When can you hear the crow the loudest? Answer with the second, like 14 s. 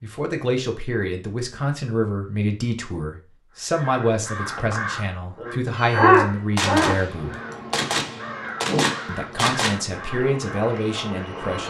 6 s.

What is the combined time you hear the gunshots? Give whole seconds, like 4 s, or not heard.
4 s.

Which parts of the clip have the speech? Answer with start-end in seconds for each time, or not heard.
0.0-7.3, 9.1-11.6.